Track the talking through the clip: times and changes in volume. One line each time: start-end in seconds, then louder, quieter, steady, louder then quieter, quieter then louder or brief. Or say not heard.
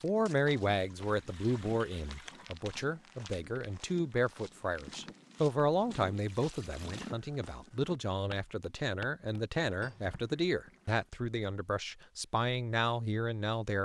0.0-13.8 steady.